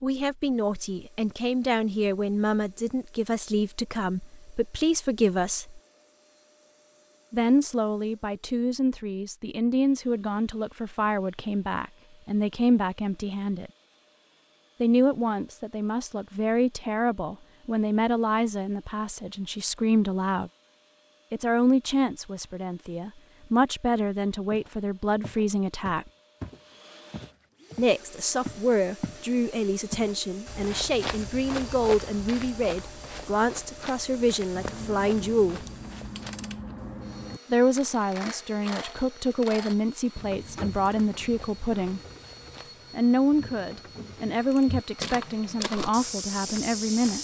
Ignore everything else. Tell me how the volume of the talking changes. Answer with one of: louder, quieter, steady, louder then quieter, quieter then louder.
steady.